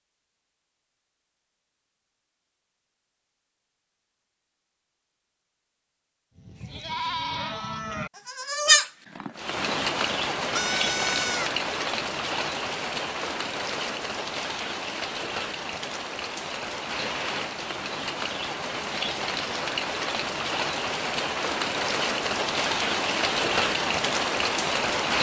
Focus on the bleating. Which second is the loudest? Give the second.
9 s.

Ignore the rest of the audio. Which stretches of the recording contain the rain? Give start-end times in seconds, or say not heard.
9.3-25.1.